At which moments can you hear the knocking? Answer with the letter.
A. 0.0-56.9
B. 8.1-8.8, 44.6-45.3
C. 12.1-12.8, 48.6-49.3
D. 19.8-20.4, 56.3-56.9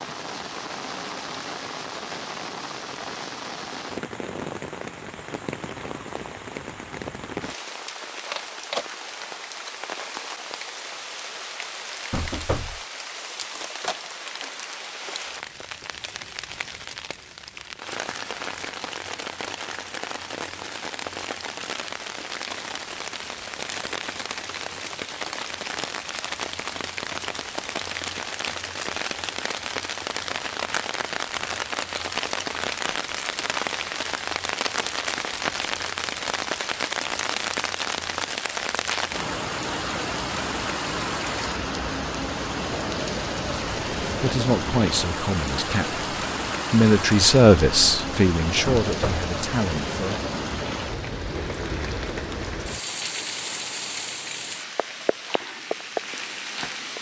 C.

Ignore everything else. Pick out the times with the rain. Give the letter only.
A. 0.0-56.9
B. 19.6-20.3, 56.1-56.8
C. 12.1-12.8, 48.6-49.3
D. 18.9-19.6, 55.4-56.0
A.